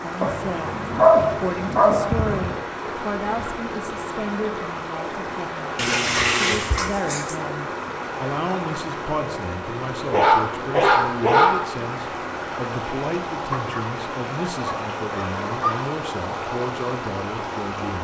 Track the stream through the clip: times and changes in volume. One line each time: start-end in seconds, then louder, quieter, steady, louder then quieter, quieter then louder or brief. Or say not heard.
0.0-17.9 steady.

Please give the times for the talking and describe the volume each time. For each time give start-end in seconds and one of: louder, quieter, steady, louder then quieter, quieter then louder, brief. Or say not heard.
0.0-17.9 steady.